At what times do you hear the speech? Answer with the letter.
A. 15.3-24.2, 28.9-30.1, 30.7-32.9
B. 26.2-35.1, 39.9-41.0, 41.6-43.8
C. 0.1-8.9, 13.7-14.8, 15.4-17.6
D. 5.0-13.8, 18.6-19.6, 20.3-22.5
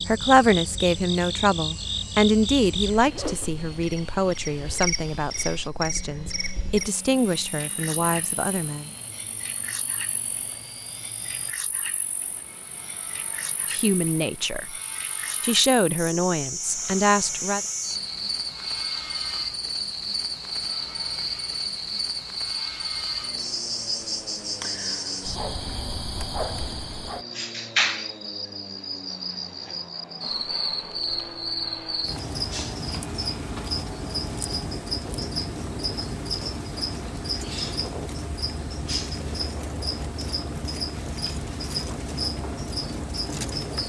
C.